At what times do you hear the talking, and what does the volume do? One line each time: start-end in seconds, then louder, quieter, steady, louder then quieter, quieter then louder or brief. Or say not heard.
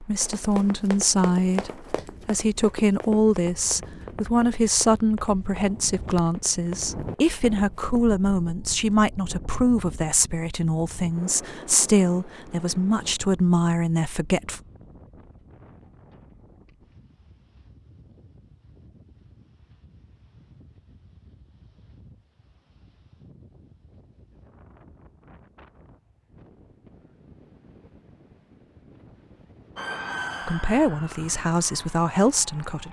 0.0-14.6 steady
30.4-32.8 brief.